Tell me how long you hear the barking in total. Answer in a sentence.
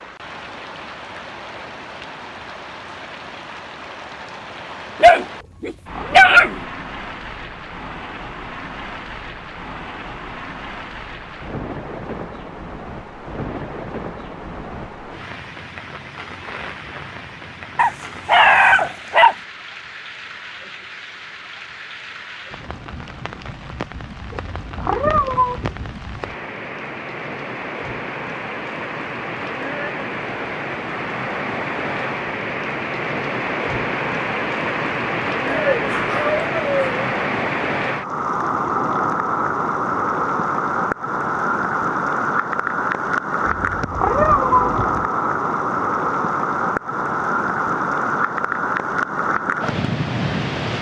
You can hear the barking for 5 seconds altogether.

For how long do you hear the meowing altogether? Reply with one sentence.
The meowing can be heard for 4 seconds in total.